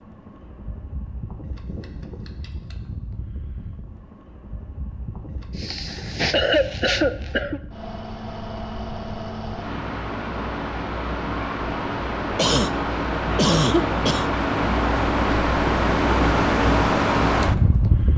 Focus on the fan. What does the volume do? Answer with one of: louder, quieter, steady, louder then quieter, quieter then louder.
louder.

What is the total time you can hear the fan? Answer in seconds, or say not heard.
18 s.